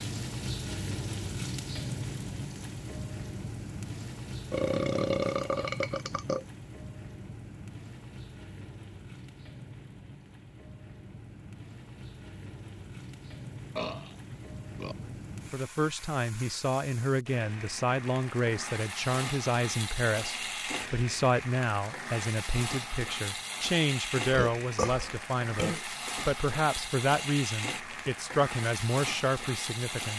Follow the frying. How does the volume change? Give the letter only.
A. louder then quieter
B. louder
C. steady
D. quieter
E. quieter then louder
E.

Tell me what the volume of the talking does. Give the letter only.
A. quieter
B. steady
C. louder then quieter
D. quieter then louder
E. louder
B.